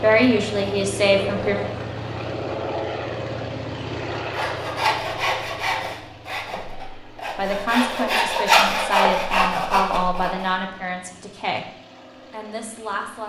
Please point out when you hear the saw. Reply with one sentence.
The saw can be heard from 4.3 to 10.5 s.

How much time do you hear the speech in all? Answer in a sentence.
You can hear the speech for 7 seconds altogether.